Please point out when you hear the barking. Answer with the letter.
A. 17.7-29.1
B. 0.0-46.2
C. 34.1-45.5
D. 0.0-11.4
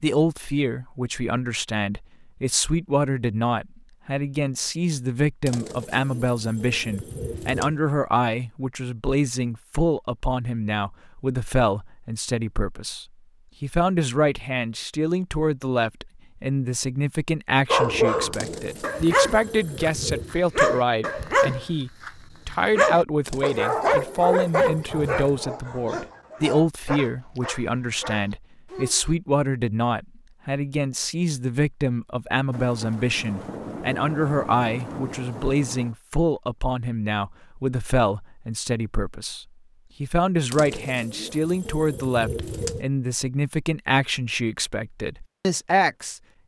A.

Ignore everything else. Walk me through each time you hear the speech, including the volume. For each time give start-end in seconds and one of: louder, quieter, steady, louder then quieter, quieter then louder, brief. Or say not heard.
0.0-46.2 steady.